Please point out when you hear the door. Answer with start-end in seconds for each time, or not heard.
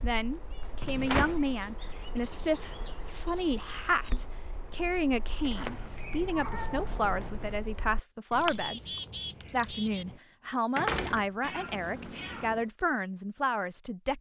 0.6-1.6, 5.4-7.3, 10.8-12.2.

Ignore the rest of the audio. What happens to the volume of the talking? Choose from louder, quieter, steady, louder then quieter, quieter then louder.
steady.